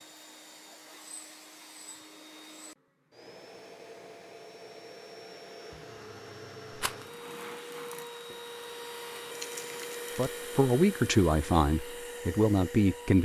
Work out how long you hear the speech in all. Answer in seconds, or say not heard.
3 s.